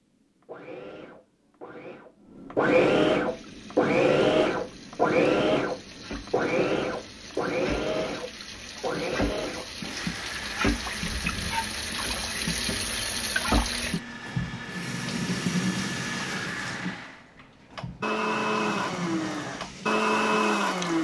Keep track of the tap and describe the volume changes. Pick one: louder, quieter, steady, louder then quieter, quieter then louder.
louder then quieter.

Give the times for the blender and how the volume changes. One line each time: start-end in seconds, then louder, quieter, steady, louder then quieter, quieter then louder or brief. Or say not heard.
0.0-20.9 quieter then louder.